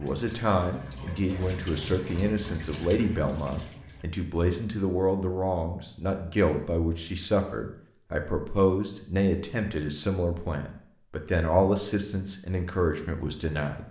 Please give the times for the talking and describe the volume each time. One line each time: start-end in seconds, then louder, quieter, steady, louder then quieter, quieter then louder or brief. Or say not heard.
0.0-13.8 steady.